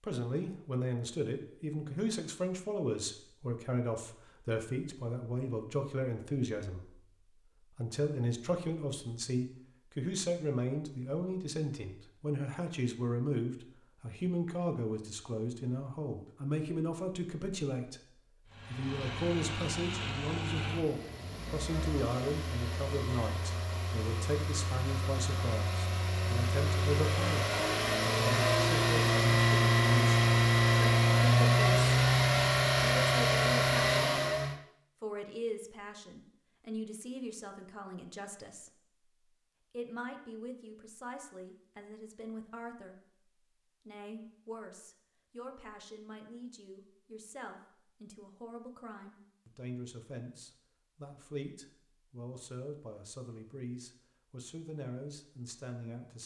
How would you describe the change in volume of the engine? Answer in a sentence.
The volume of the engine goes up.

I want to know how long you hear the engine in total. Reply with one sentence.
You can hear the engine for 16 seconds altogether.